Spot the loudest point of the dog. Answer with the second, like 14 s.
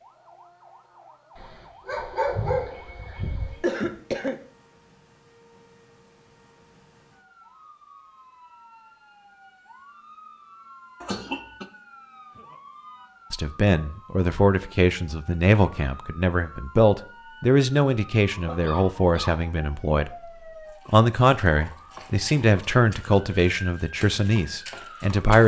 2 s.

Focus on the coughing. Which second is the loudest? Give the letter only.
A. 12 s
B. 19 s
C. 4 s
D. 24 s
C.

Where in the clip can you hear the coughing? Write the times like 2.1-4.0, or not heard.
3.6-4.4, 11.0-11.7, 18.4-19.4.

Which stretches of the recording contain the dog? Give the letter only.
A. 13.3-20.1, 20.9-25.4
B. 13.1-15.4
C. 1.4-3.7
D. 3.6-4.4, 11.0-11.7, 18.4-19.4
C.